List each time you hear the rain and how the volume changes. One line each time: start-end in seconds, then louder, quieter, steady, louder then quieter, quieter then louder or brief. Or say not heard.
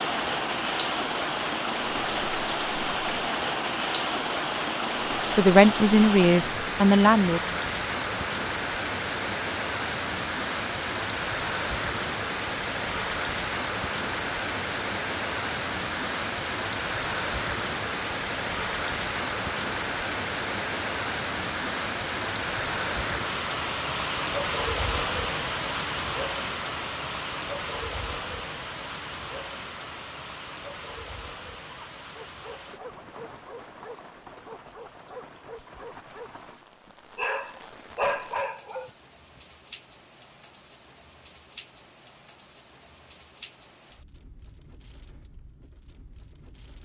0.0-46.7 quieter.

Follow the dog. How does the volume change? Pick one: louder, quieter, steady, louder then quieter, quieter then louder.
louder.